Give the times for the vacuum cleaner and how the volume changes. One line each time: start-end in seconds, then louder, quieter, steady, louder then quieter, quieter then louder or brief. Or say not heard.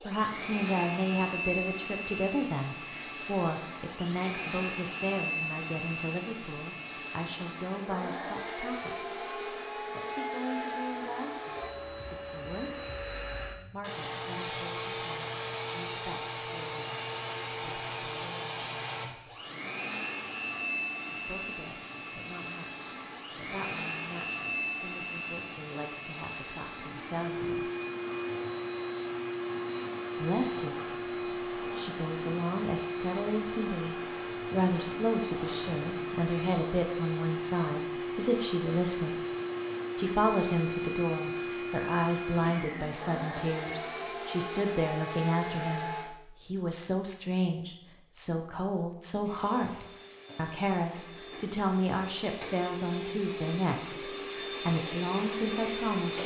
0.0-46.1 steady
49.2-56.2 louder.